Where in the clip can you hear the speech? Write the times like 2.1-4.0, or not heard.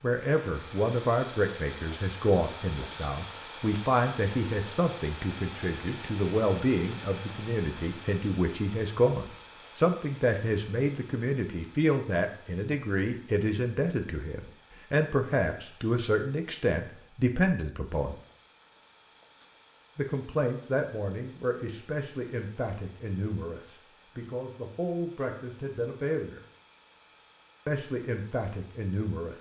0.0-18.1, 19.9-26.4, 27.6-29.3.